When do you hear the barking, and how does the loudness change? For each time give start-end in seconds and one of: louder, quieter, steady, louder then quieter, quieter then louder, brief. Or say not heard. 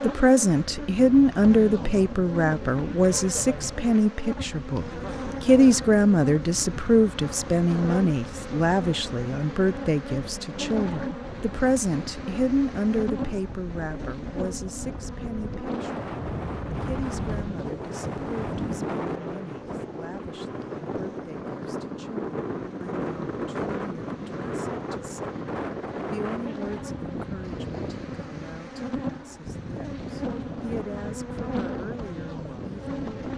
not heard.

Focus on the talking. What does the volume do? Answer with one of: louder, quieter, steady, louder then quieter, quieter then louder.
quieter.